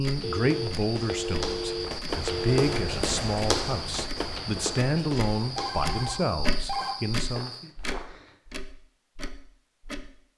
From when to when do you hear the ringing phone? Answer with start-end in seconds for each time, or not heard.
0.2-3.0, 5.5-7.0.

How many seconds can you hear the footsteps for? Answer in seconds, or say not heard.
8 s.